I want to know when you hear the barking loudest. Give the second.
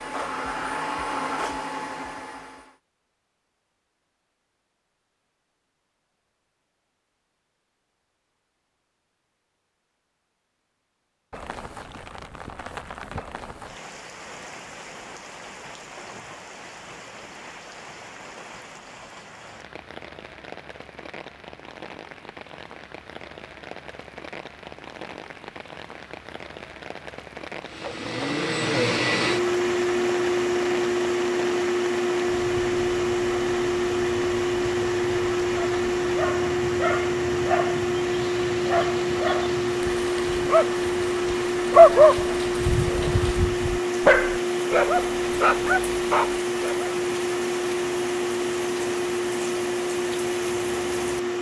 42 s.